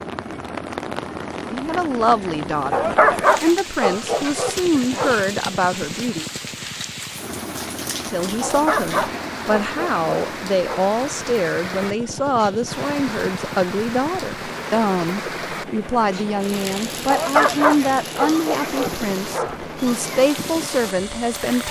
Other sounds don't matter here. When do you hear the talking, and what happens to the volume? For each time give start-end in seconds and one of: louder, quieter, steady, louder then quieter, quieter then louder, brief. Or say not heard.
1.4-6.2 quieter then louder
8.1-21.6 steady.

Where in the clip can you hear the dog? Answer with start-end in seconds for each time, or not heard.
2.7-5.2, 8.4-10.9, 17.1-19.7.